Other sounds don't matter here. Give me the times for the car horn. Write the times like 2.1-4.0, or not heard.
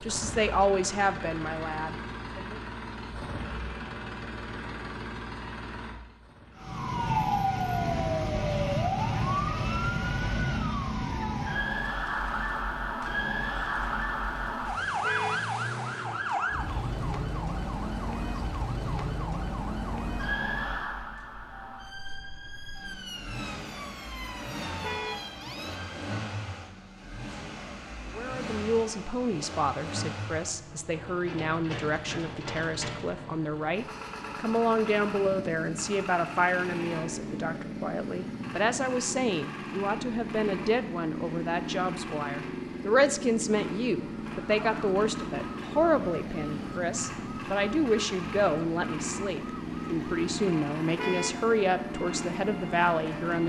15.0-15.5, 24.8-25.3, 51.0-51.5.